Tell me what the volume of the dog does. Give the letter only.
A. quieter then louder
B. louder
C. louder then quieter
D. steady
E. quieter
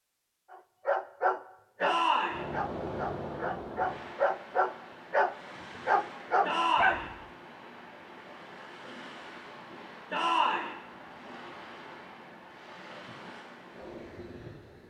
A.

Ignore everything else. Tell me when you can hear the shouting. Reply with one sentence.
You can hear the shouting from 1.8 to 2.4 s, from 6.4 to 7.0 s and from 10.1 to 10.7 s.